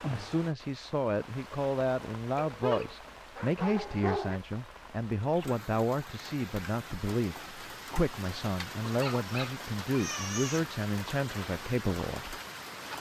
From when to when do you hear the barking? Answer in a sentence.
The barking can be heard from 2.4 to 4.4 s and from 8.9 to 10.6 s.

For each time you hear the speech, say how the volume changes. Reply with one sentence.
The speech can be heard from 0.1 to 12.4 s, at a steady volume.